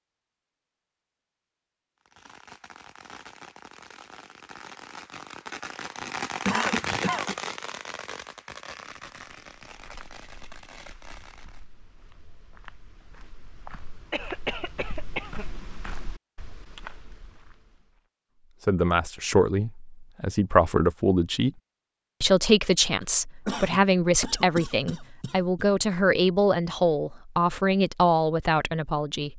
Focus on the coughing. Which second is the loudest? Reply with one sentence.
The loudest moment of the coughing is at 7 seconds.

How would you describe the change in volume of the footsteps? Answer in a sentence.
The volume of the footsteps goes up.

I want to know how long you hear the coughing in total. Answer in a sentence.
The coughing can be heard for 5 seconds in total.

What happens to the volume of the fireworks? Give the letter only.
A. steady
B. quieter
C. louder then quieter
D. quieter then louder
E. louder
C.